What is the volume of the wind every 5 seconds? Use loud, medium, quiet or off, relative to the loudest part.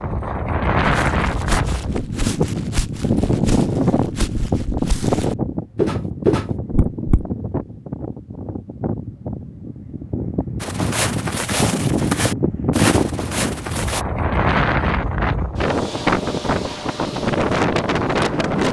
loud, medium, loud, loud.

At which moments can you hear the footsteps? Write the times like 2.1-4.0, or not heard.
0.8-7.2, 10.6-14.1.